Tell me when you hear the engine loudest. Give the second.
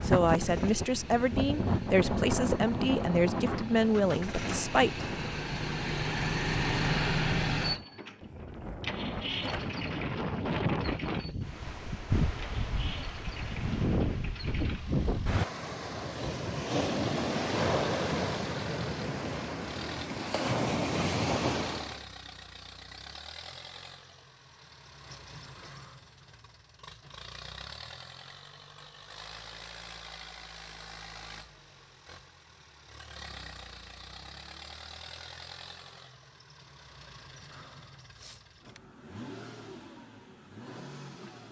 7 s.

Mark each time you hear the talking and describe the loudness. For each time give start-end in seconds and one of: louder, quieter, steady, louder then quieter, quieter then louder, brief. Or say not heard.
0.0-5.0 steady.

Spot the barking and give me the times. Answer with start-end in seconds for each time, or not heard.
not heard.